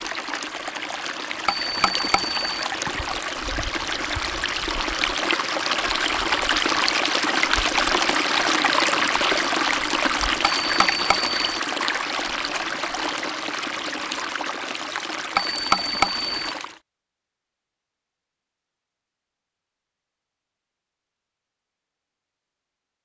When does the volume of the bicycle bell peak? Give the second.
16 s.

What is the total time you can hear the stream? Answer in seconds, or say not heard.
17 s.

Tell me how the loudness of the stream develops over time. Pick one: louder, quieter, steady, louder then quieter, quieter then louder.
louder then quieter.